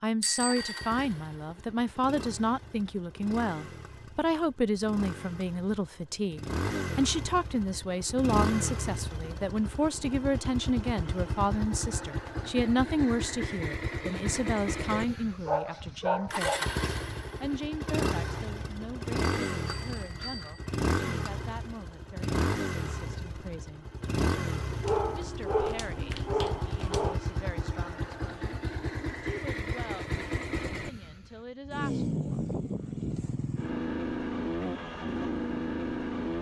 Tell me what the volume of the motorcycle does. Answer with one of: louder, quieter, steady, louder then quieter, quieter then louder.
louder.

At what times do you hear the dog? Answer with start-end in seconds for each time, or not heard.
14.9-16.6, 24.8-27.2.